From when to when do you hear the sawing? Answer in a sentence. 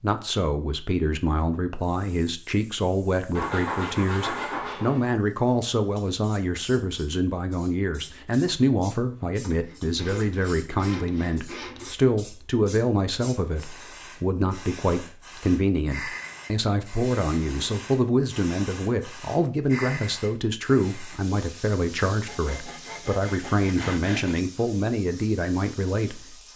You can hear the sawing from 3.4 to 5.2 s, from 9.4 to 12.0 s and from 22.2 to 24.4 s.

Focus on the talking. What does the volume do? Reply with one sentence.
The loudness of the talking stays about the same.